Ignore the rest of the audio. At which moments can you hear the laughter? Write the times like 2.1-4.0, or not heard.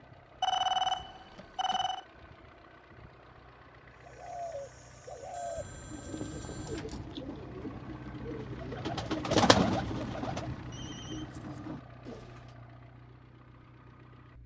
not heard.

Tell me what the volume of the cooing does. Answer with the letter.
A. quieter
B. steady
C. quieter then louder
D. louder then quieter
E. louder
D.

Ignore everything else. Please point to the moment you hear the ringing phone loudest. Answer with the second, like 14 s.
1 s.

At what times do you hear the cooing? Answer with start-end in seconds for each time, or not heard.
4.0-12.6.